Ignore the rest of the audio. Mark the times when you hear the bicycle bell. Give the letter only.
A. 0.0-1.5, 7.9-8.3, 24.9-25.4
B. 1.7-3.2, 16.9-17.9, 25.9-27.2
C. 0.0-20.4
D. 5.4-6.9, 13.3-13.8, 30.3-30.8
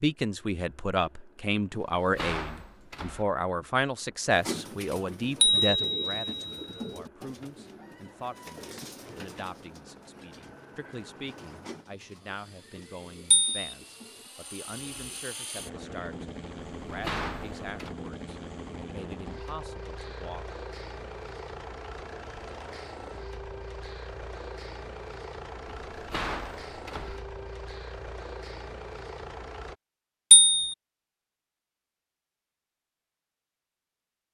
D.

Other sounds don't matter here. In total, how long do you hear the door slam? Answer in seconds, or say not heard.
4 s.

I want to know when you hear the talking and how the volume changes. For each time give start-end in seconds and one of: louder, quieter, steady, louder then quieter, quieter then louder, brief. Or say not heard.
0.0-20.4 quieter.